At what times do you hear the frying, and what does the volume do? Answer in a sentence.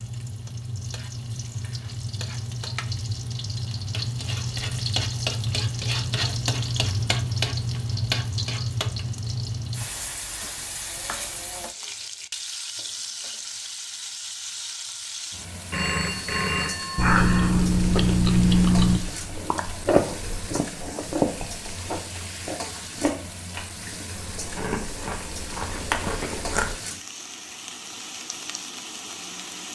The frying can be heard from 0.0 to 29.7 s, getting quieter.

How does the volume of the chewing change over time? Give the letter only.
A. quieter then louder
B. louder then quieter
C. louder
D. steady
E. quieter
E.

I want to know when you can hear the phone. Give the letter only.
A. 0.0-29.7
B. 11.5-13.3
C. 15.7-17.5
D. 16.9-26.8
C.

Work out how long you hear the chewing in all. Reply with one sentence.
You can hear the chewing for 10 seconds altogether.